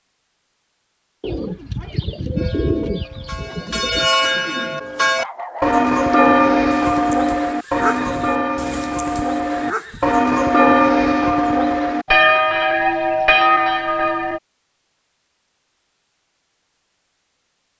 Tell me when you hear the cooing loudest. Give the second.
3 s.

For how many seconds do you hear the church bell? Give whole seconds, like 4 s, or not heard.
12 s.